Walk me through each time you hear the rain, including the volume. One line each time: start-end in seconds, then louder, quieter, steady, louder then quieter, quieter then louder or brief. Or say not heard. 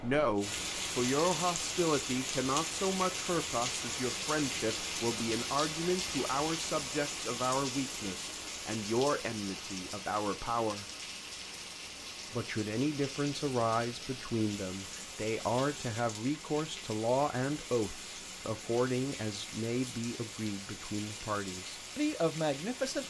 0.0-23.0 quieter.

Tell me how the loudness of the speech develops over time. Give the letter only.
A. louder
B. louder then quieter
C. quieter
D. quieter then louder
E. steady
E.